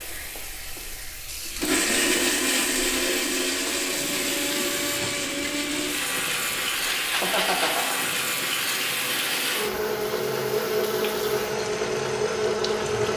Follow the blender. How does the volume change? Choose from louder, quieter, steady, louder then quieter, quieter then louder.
steady.